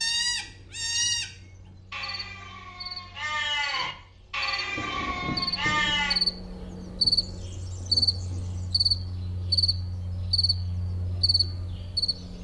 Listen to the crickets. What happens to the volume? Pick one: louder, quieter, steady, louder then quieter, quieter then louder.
louder then quieter.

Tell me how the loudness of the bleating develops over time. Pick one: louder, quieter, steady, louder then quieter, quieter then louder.
quieter then louder.